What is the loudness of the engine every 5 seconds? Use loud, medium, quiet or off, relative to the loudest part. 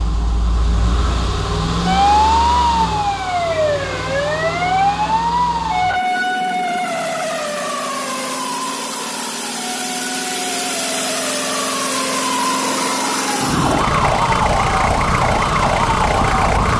loud, medium, loud, loud.